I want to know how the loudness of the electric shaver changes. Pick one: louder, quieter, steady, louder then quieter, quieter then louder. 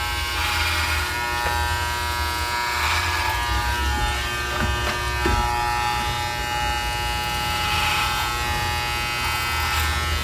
steady.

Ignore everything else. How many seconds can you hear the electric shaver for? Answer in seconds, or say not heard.
10 s.